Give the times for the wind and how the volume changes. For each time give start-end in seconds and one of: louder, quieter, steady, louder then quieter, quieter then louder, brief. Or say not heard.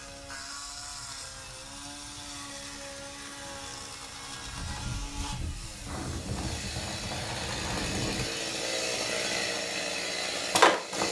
0.0-8.2 louder.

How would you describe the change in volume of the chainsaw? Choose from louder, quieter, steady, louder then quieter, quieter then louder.
louder.